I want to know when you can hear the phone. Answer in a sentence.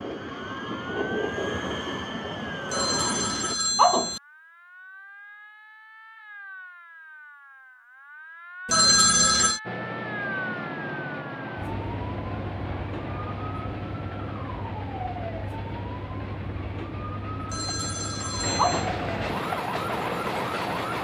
You can hear the phone from 2.7 to 4.2 s, from 8.7 to 9.6 s and from 17.5 to 18.9 s.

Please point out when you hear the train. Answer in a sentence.
You can hear the train from 0.0 to 3.5 s and from 9.7 to 20.9 s.